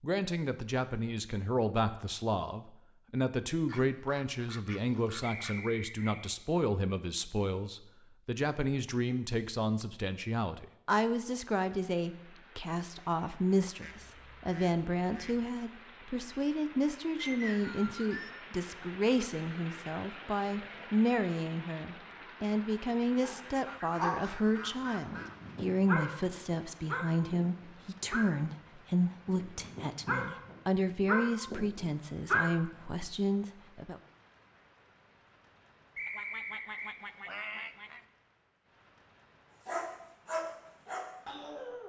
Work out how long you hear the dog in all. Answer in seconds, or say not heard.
10 s.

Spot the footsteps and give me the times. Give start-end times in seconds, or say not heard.
not heard.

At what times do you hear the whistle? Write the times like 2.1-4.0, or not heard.
5.2-6.2, 17.2-18.4, 36.0-37.0.